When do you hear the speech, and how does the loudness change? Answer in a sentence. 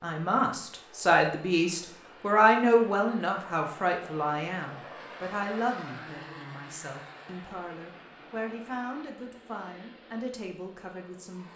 You can hear the speech from 0.0 to 11.5 s, getting quieter.